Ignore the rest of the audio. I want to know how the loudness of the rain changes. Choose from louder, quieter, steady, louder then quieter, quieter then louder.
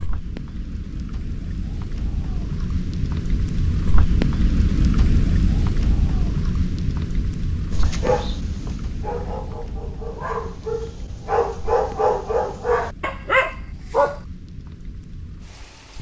louder then quieter.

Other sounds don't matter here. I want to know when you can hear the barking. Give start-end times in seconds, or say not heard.
7.7-14.2.